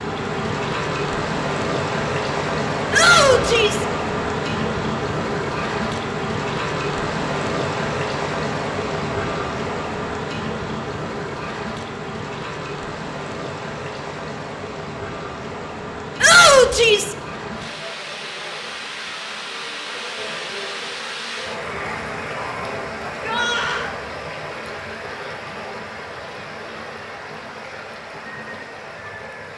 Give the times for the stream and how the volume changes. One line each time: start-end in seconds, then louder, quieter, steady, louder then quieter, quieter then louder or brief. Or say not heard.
0.0-29.5 quieter.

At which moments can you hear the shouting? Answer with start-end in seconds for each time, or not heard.
2.9-3.9, 16.2-17.1, 23.1-23.9.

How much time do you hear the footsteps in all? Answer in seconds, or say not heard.
not heard.